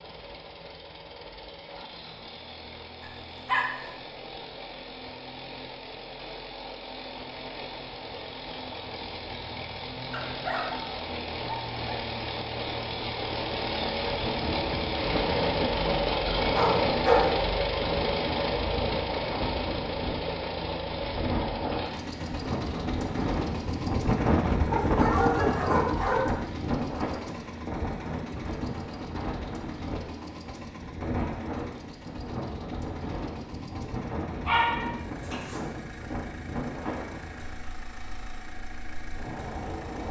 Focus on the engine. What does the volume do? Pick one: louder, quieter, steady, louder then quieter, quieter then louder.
louder then quieter.